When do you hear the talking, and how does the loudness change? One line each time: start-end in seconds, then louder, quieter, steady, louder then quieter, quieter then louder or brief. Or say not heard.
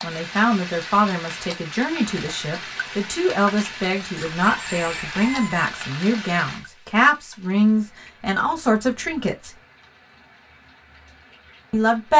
0.0-9.5 steady
11.7-12.1 brief.